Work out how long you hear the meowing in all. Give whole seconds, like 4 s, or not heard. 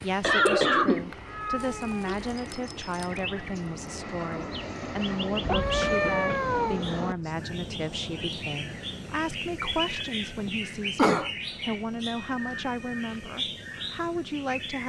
4 s.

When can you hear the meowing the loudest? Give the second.
6 s.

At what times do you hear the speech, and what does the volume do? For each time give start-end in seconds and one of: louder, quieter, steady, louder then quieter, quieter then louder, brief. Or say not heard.
0.0-14.8 steady.